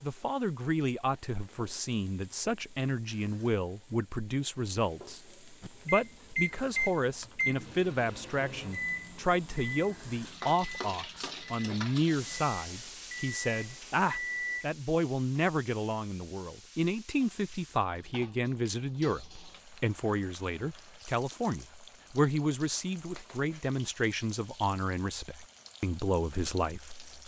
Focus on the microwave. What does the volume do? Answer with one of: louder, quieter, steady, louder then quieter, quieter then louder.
quieter then louder.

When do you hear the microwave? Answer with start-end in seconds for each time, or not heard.
5.6-14.7.